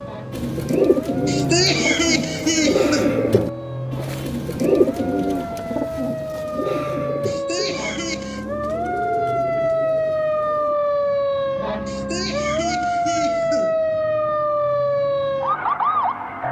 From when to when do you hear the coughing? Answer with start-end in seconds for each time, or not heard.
1.2-3.1, 7.2-8.4, 11.8-13.8.